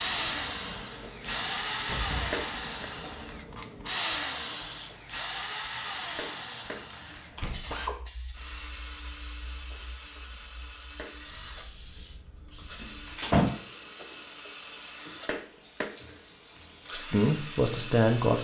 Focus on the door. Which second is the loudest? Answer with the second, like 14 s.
13 s.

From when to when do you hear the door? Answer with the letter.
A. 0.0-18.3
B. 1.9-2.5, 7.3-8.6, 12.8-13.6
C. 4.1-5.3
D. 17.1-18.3
B.